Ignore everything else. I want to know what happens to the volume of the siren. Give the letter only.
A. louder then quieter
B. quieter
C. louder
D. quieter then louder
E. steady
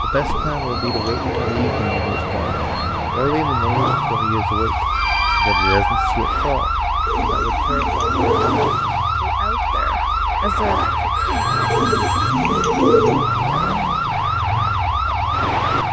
C.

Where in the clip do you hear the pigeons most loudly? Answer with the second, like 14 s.
13 s.